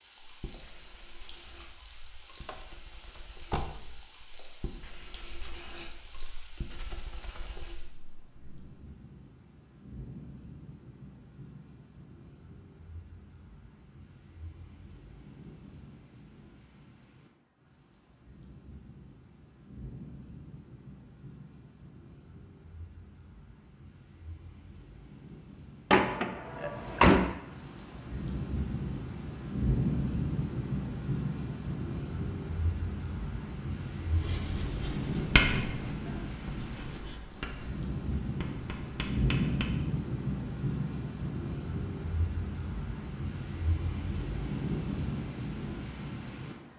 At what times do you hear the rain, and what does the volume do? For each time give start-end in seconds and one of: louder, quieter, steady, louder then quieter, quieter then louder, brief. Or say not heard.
0.0-46.7 louder.